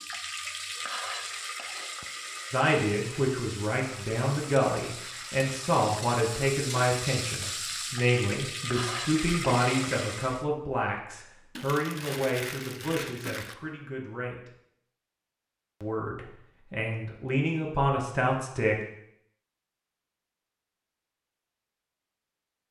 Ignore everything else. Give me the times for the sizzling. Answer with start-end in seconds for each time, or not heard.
0.0-10.4.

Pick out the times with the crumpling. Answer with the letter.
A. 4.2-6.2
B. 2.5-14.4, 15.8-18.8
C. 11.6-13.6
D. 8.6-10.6
C.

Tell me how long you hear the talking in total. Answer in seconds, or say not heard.
15 s.